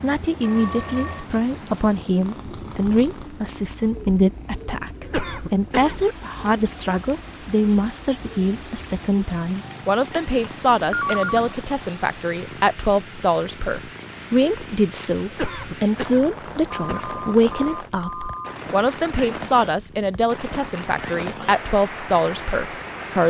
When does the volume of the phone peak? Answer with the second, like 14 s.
11 s.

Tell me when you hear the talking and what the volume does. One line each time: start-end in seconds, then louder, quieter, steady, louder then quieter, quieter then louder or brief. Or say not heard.
0.0-23.2 steady.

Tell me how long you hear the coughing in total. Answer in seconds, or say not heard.
3 s.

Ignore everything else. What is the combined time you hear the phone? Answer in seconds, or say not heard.
4 s.